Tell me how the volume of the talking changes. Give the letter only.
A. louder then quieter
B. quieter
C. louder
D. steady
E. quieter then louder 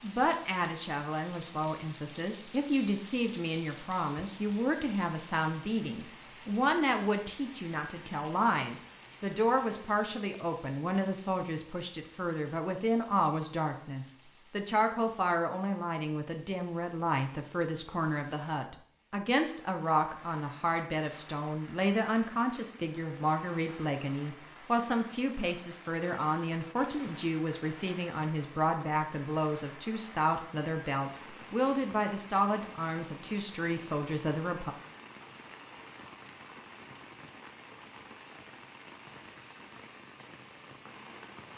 D.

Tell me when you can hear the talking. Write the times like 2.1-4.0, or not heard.
0.0-34.8.